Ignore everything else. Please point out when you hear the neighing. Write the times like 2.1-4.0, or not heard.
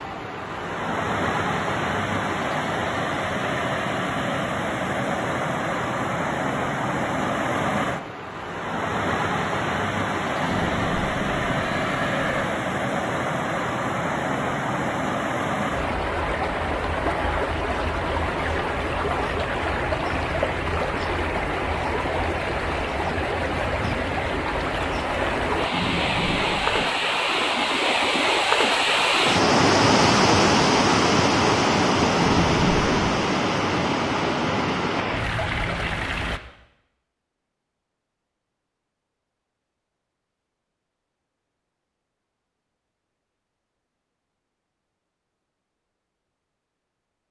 10.4-12.4, 25.7-26.9, 32.1-33.1.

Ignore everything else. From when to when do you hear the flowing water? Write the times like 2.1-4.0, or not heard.
0.0-36.4.